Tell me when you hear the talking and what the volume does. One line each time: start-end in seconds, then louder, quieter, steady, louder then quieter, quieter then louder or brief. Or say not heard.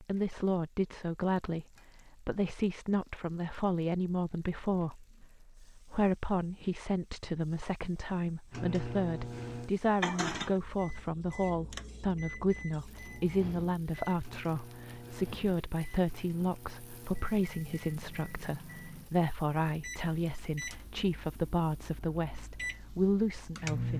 0.0-23.9 steady.